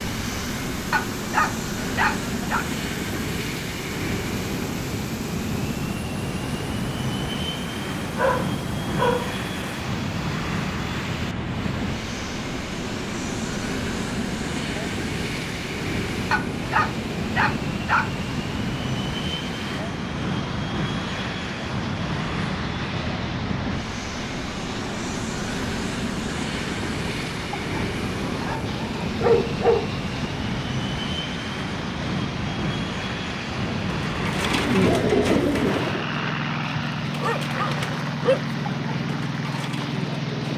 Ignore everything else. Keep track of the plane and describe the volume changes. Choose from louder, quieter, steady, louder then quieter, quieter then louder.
steady.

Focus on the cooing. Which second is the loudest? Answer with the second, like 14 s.
35 s.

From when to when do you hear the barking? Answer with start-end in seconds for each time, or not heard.
0.9-2.6, 8.2-9.3, 16.3-18.1, 28.2-29.9, 37.2-38.4.